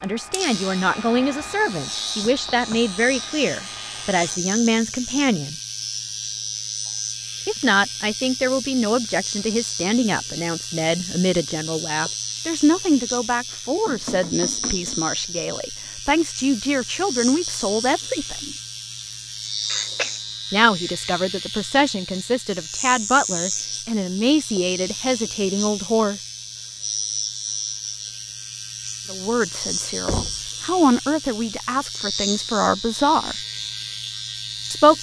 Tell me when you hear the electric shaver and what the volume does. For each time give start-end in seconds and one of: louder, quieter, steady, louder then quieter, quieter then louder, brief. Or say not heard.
0.0-34.9 steady.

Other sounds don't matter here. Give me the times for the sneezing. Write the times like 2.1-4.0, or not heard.
19.6-20.2.